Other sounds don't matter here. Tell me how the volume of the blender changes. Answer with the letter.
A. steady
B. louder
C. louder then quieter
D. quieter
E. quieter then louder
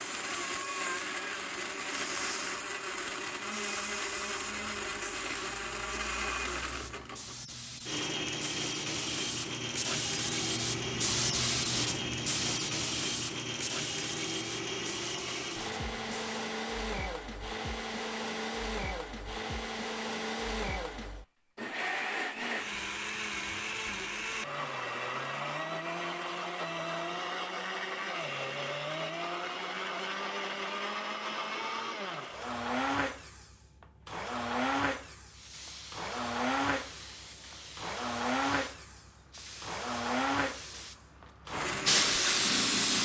A.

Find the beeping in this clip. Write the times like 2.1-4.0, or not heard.
not heard.